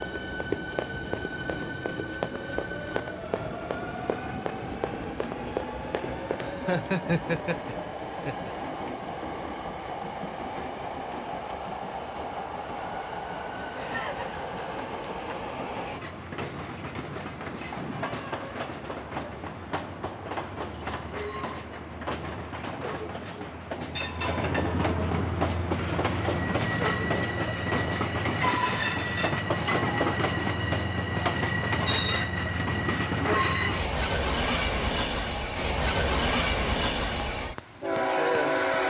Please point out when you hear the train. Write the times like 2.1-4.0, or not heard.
0.0-38.8.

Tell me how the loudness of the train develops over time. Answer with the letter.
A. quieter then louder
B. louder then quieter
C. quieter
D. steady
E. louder
E.